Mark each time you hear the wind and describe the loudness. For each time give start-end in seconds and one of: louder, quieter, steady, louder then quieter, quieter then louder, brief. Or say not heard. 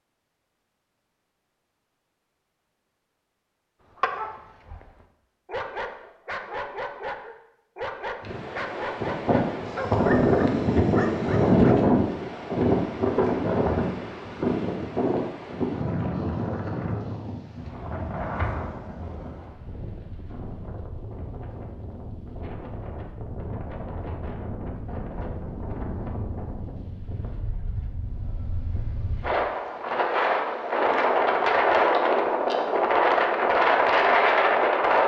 8.2-35.0 quieter then louder.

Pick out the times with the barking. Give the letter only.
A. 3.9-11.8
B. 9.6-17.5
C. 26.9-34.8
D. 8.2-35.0
A.